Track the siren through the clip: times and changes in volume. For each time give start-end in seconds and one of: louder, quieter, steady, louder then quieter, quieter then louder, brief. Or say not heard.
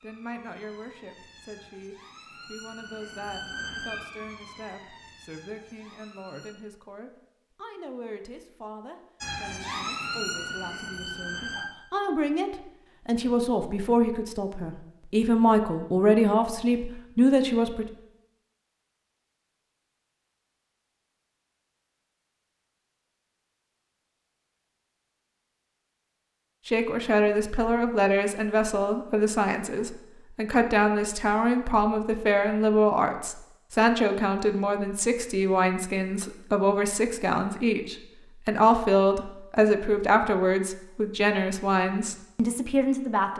0.0-6.5 louder then quieter
9.2-11.7 brief.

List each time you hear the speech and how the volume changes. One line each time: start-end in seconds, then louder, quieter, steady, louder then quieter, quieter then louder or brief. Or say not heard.
0.0-17.9 louder
26.6-43.3 steady.